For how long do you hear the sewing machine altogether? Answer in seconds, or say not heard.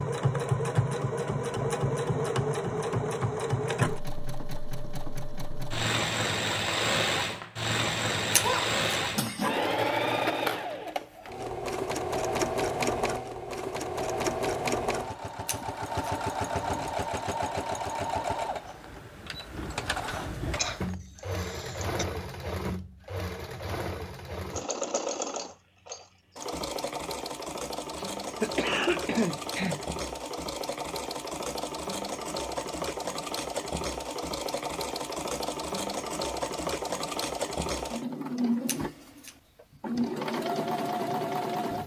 42 s.